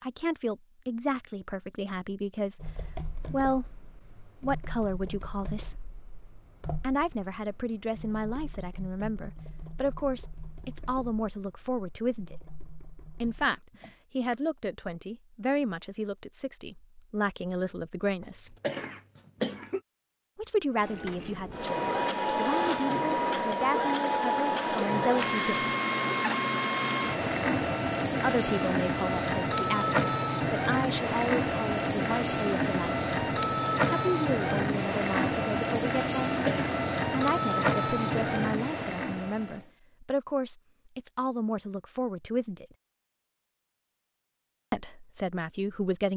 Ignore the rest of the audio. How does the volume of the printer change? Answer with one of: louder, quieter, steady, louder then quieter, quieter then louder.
steady.